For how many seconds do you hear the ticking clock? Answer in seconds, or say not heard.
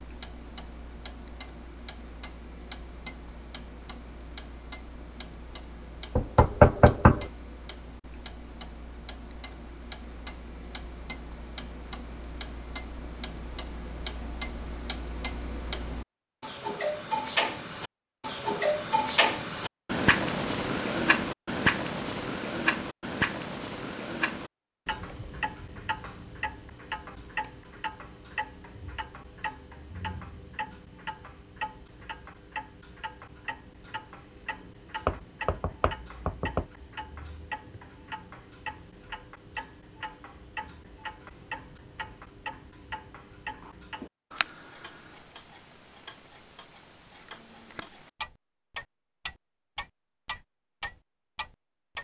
52 s.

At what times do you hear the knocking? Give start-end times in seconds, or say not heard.
6.2-7.2, 35.0-36.6.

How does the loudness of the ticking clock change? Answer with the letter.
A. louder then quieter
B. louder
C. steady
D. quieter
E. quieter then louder
A.